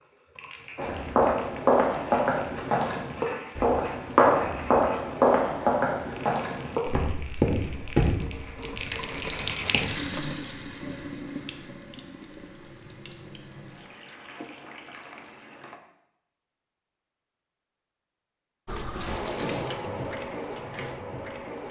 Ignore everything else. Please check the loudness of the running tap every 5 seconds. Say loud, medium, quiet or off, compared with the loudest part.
medium, loud, medium, loud, loud.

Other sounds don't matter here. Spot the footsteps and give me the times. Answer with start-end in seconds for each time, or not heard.
0.8-10.1.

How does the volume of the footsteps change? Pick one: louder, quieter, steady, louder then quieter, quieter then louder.
quieter.